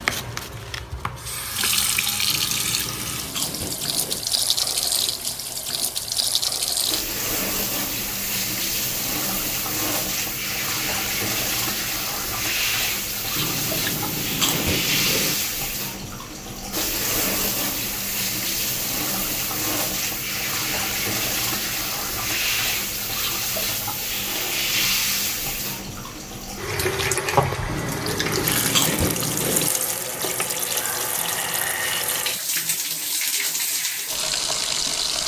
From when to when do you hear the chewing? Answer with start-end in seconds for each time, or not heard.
2.3-4.2, 13.3-15.3, 27.6-29.7.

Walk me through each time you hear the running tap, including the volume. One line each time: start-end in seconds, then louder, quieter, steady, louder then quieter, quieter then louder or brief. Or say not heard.
0.0-35.2 steady.